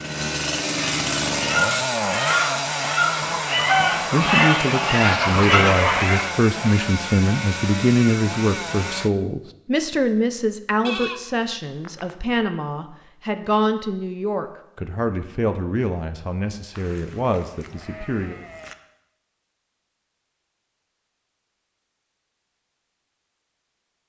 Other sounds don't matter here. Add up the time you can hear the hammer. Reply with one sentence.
The hammer can't be heard in this clip.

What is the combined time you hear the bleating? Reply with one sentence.
The bleating can be heard for 5 seconds in total.